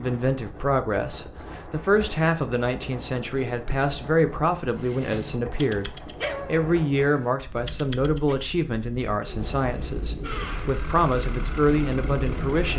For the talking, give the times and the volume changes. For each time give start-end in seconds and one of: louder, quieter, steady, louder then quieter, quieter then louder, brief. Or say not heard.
0.0-12.7 steady.